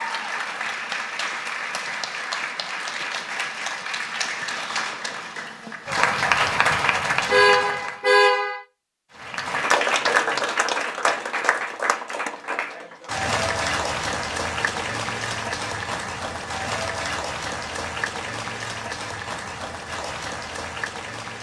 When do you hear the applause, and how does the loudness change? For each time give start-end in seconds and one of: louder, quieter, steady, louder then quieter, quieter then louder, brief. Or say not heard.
0.0-8.1 louder
9.2-21.3 quieter.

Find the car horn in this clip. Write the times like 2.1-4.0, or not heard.
7.3-8.6.